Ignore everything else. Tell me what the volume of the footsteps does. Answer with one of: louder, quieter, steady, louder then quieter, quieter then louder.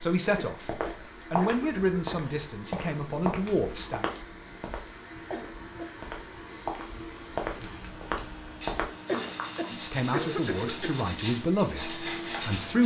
quieter then louder.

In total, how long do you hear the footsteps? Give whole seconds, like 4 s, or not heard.
9 s.